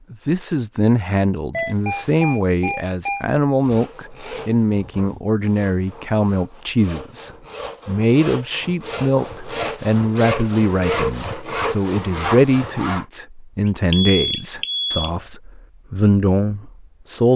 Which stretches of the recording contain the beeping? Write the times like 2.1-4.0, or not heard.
1.5-3.2, 13.9-15.1.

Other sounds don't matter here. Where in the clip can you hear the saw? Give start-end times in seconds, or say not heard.
3.6-13.1.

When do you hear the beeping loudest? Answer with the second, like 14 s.
14 s.